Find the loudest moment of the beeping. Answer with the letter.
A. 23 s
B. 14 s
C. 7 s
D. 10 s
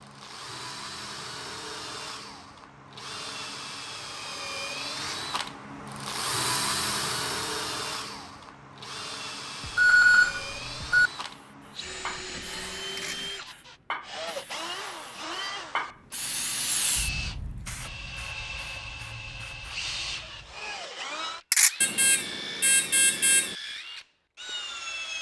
D.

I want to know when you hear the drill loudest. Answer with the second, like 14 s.
7 s.